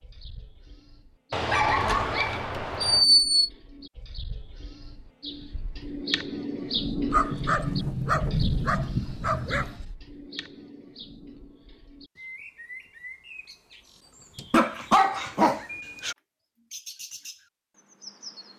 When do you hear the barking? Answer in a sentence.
You can hear the barking from 1.3 to 3.0 s, from 7.1 to 9.7 s and from 14.5 to 16.1 s.